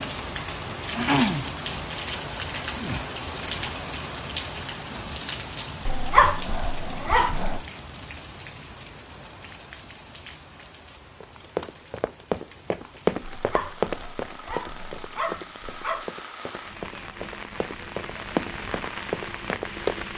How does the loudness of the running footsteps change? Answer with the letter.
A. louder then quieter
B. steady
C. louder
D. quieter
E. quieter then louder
E.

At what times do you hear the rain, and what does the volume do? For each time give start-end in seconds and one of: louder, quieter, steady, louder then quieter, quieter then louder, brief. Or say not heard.
0.0-20.1 quieter then louder.